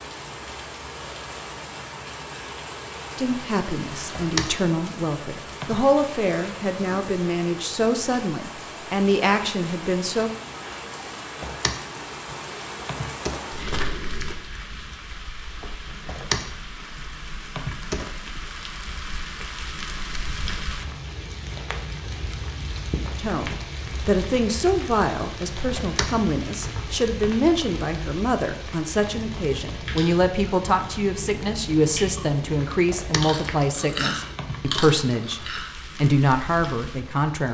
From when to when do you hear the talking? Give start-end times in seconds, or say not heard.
3.1-10.3, 23.1-37.4.